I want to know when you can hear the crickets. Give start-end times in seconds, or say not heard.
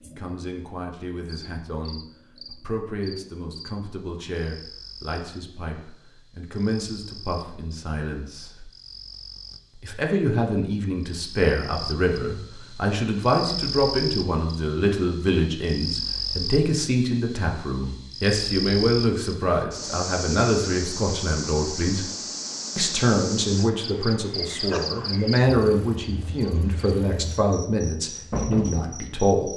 0.0-29.5.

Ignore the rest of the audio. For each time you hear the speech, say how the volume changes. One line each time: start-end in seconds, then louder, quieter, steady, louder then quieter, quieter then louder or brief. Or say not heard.
0.1-8.7 steady
9.8-22.1 steady
22.8-29.5 steady.